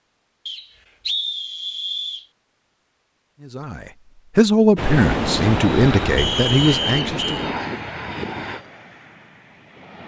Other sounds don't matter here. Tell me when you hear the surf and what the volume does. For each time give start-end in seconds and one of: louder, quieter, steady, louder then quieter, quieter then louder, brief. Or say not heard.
4.8-10.0 quieter.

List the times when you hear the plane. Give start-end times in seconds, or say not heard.
5.5-8.7.